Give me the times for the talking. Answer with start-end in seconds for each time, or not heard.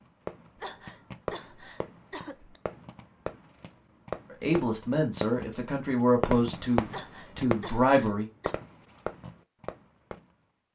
4.3-8.3.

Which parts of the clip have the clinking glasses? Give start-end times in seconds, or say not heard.
not heard.